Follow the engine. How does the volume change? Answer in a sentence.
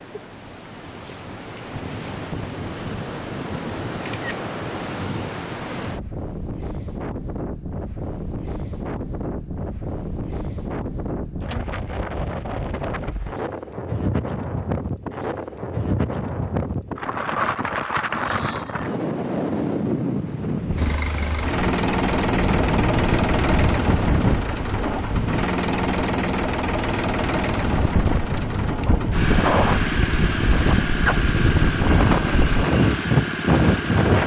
The volume of the engine stays about the same.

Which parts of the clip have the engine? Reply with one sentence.
You can hear the engine from 20.8 to 34.2 s.